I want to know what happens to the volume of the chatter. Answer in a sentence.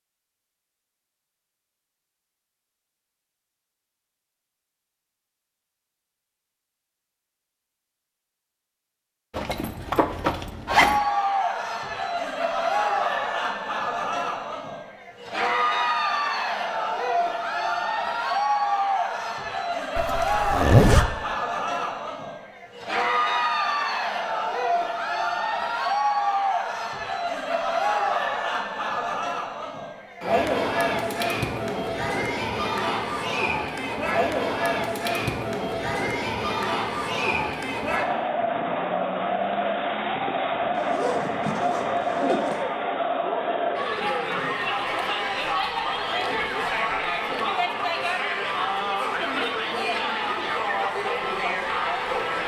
The volume of the chatter stays about the same.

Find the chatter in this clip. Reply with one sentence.
The chatter can be heard from 10.7 to 52.4 s.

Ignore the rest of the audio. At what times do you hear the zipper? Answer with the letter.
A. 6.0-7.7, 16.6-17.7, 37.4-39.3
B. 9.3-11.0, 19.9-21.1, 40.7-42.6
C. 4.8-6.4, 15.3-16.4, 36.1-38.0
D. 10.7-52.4
B.